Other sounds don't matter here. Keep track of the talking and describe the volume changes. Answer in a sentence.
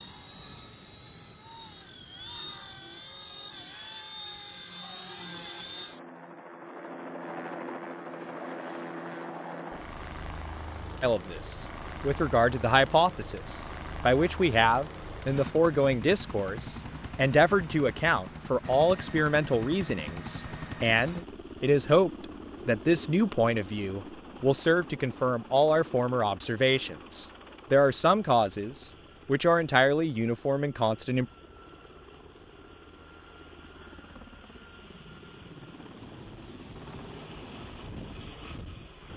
The volume of the talking stays about the same.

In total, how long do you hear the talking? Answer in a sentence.
The talking can be heard for 20 seconds in total.